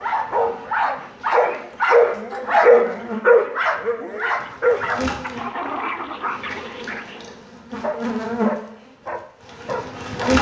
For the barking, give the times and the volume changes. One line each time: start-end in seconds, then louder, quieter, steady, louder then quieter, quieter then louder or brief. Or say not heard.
0.0-10.3 quieter.